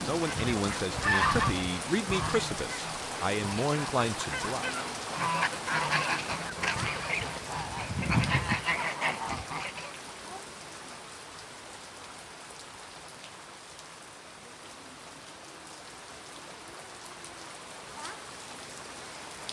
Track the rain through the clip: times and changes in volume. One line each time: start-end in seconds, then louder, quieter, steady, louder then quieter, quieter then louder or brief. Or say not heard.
0.0-19.4 quieter.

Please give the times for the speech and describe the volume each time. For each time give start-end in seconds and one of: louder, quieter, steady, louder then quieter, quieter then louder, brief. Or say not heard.
0.0-4.7 steady.